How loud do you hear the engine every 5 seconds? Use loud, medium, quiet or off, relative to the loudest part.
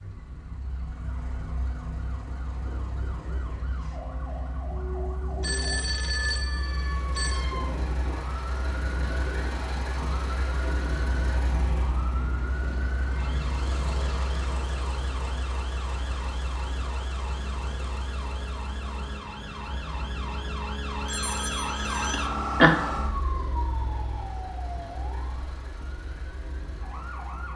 medium, loud, loud, medium, medium, medium.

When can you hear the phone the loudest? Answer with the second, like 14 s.
6 s.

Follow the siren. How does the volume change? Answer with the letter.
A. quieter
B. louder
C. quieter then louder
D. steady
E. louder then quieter
B.